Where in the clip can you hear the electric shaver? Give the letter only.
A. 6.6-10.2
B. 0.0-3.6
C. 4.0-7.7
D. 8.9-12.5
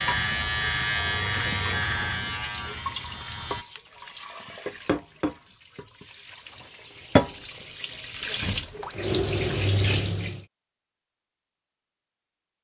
B.